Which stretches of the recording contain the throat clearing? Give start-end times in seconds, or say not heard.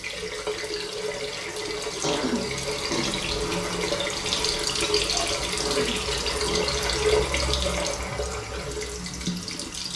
2.0-3.2, 5.5-6.7.